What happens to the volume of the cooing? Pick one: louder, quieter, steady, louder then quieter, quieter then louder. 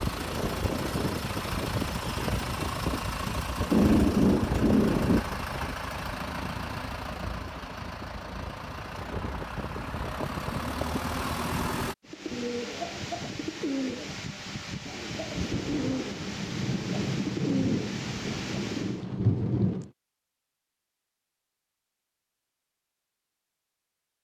steady.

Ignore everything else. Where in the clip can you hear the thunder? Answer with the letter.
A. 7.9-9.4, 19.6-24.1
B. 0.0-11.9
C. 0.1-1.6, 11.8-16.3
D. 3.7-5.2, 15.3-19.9
D.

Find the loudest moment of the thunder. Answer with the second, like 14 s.
4 s.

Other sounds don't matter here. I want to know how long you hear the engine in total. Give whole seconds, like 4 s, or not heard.
12 s.